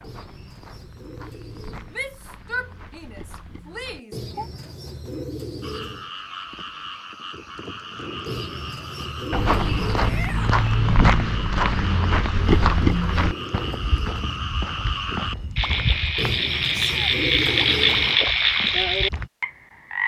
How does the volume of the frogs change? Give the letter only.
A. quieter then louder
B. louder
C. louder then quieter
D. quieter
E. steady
B.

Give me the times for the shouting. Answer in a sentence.
You can hear the shouting from 1.9 to 4.5 s, from 9.9 to 10.6 s and from 16.7 to 17.1 s.